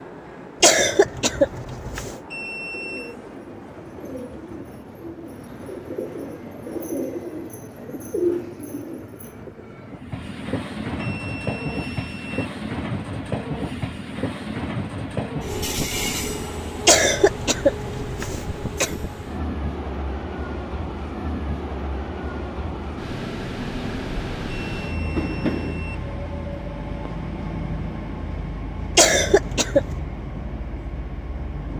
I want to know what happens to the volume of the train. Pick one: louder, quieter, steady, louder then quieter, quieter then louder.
louder.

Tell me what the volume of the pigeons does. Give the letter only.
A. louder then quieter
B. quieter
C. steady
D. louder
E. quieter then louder
D.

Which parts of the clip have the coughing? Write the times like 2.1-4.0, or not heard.
0.6-2.1, 16.9-18.9, 28.9-30.0.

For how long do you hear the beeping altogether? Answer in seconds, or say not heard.
4 s.